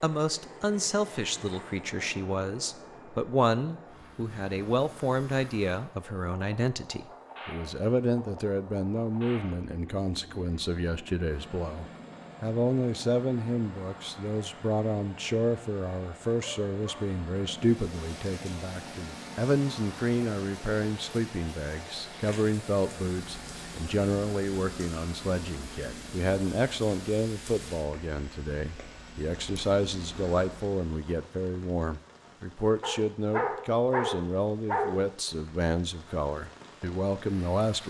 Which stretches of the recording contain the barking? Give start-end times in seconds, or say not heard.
16.3-17.1, 32.8-35.0.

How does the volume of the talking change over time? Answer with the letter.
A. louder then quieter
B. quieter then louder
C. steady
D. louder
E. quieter
C.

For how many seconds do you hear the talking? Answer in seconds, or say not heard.
38 s.